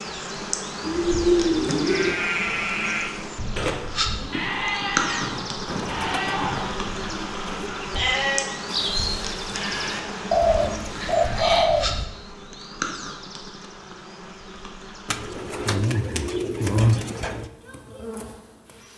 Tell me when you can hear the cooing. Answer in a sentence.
You can hear the cooing from 0.8 to 2.1 s, from 5.7 to 7.7 s, from 10.3 to 12.1 s and from 15.1 to 17.5 s.